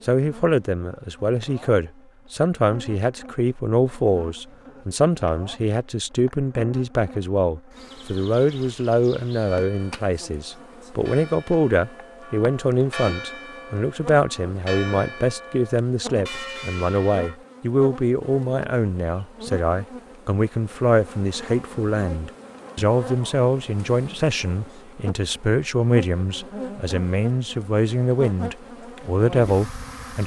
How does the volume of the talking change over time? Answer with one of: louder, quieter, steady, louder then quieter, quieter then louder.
steady.